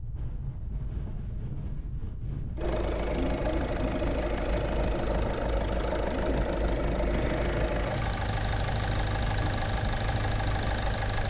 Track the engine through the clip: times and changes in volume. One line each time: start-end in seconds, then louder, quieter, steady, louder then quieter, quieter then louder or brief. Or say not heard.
2.5-11.2 steady.